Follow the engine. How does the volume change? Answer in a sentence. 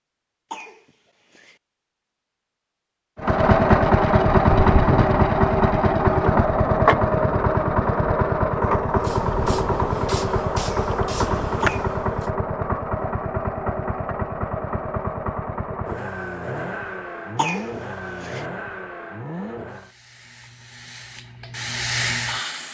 The volume of the engine goes down.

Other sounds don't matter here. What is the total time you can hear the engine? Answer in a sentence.
The engine can be heard for 17 seconds in total.